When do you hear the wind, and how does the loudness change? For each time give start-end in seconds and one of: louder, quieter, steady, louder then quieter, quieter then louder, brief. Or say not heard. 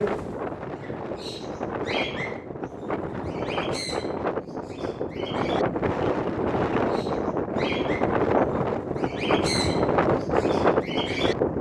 0.0-11.5 louder.